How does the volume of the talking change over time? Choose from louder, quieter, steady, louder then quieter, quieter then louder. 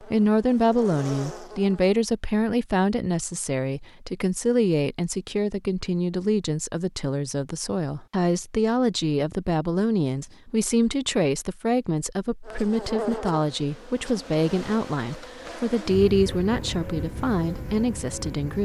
steady.